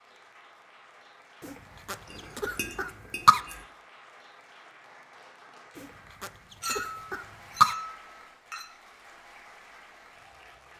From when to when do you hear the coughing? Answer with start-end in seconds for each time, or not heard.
1.4-3.4, 5.8-7.8.